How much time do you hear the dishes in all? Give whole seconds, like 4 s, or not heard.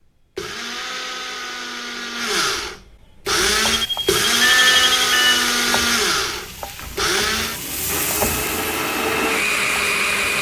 not heard.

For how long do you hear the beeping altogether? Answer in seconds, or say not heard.
2 s.